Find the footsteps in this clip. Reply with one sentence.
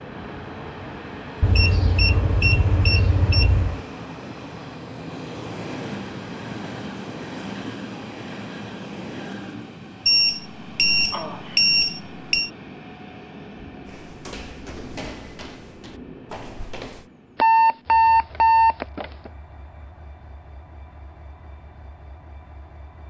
The footsteps can be heard from 13.8 to 17.1 s.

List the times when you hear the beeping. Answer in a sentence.
The beeping can be heard from 1.4 to 3.8 s, from 10.1 to 12.5 s and from 17.4 to 19.3 s.